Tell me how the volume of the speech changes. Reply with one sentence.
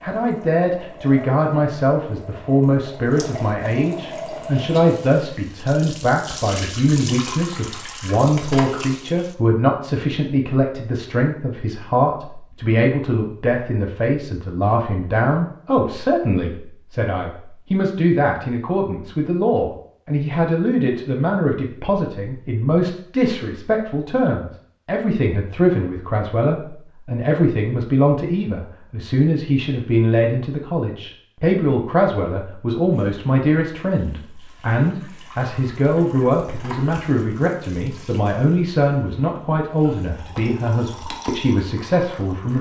The loudness of the speech stays about the same.